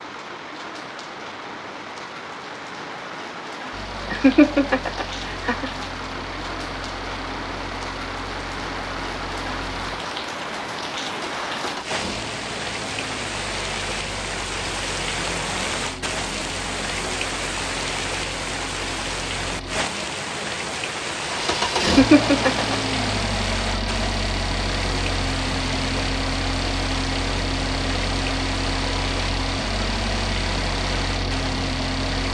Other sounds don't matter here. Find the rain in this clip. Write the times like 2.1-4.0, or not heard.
0.0-32.2.